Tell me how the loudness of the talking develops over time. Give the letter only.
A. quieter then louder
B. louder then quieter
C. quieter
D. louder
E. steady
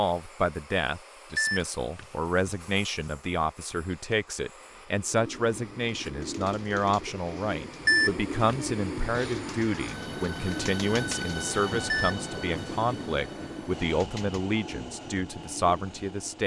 E.